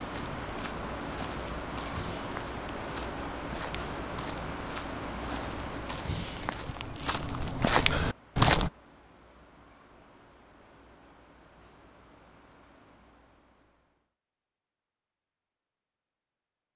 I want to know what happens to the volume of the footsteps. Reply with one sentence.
The volume of the footsteps goes up.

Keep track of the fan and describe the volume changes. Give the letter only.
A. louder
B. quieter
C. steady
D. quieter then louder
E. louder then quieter
B.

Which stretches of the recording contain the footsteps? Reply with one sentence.
You can hear the footsteps from 0.1 to 8.7 s.